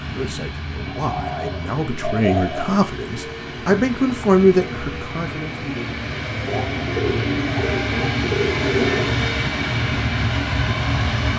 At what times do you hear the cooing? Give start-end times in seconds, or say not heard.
0.9-2.6, 6.5-9.2.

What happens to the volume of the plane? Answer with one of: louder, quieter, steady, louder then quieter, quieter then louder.
louder.